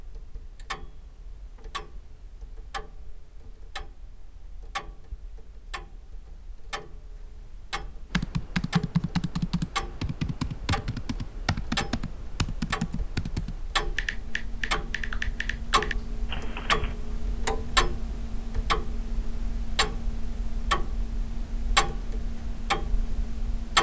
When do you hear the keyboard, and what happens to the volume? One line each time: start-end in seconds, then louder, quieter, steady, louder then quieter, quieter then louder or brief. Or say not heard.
8.1-16.9 quieter.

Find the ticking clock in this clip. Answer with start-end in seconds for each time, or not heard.
0.0-23.7.